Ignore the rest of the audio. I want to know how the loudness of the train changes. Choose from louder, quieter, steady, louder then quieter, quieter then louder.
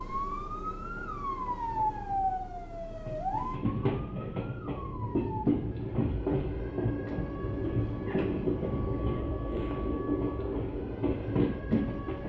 louder.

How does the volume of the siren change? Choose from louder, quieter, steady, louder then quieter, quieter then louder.
quieter.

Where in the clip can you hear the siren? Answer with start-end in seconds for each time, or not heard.
0.0-12.2.